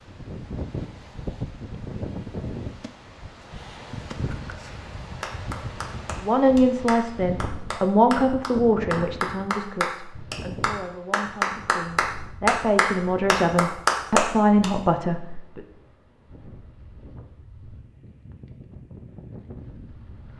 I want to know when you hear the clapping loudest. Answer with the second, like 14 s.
14 s.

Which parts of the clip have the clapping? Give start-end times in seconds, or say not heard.
5.2-14.7.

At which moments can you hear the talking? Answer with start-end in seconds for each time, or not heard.
6.2-15.6.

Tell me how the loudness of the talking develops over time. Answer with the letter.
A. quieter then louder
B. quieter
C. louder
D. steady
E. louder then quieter
A.